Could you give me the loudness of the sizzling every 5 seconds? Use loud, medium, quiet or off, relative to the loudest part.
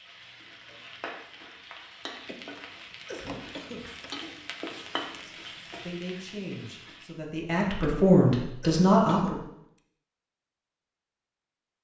loud, loud, off.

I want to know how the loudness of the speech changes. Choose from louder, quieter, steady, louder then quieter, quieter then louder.
louder.